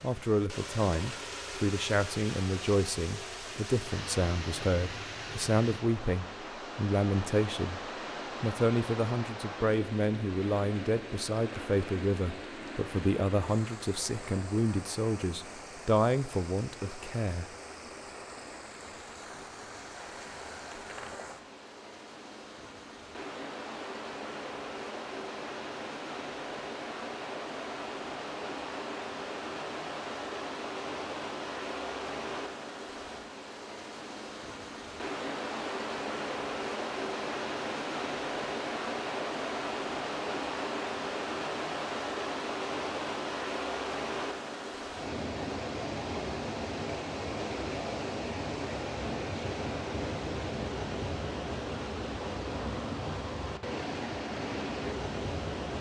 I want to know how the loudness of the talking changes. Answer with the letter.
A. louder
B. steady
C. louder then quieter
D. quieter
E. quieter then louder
B.